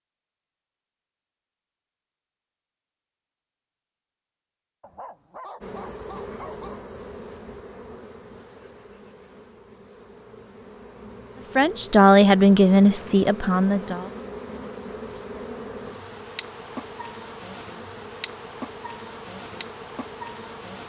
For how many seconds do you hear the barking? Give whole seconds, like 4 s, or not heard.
2 s.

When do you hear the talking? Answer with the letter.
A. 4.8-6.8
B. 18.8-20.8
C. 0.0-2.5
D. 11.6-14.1
D.